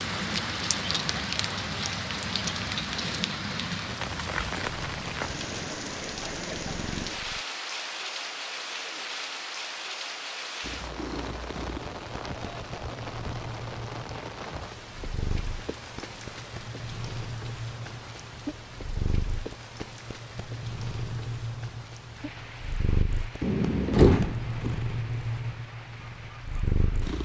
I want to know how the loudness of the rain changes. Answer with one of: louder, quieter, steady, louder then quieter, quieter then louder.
quieter.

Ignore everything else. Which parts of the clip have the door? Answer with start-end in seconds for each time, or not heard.
23.4-24.8.